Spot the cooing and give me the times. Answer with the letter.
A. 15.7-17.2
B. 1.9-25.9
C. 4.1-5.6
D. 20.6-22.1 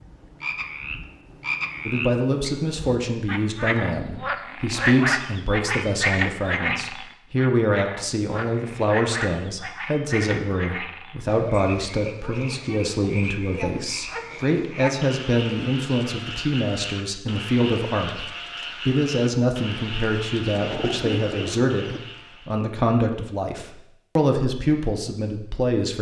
D.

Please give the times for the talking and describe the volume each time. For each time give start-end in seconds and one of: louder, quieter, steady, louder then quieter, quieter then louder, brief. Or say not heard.
1.9-25.9 steady.